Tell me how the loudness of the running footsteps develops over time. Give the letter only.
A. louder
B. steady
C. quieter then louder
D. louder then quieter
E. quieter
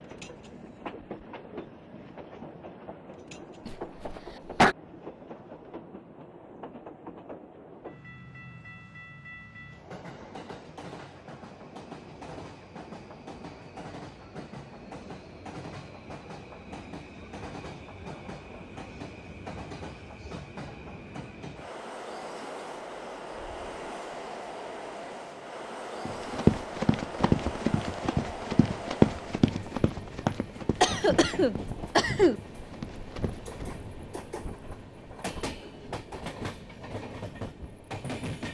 E.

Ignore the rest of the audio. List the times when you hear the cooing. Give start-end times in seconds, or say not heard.
not heard.